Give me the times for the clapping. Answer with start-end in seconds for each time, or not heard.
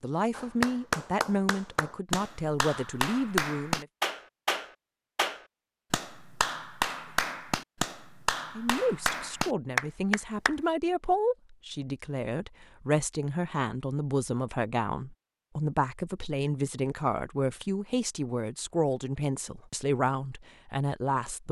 0.3-10.6.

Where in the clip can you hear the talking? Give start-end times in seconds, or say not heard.
0.0-3.9, 8.6-21.4.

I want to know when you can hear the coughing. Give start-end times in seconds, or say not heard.
not heard.